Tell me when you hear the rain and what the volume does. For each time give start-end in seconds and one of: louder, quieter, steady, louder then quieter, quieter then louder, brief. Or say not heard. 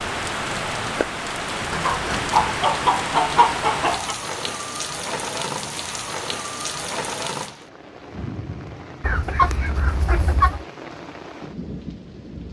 0.0-12.4 quieter.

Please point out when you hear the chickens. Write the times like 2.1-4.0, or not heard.
1.7-4.2, 9.0-10.7.